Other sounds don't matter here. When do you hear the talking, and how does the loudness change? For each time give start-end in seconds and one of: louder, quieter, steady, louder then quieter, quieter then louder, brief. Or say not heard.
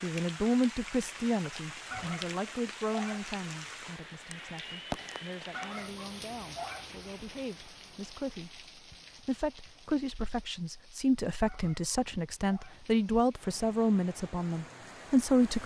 0.0-15.6 quieter then louder.